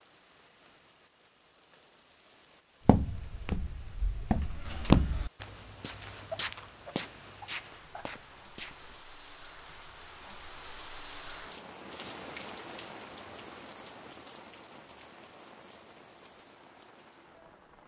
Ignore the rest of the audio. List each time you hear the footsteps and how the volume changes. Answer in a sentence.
The footsteps can be heard from 2.9 to 9.0 s, getting louder then quieter.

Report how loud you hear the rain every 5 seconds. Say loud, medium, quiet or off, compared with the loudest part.
quiet, medium, loud, medium.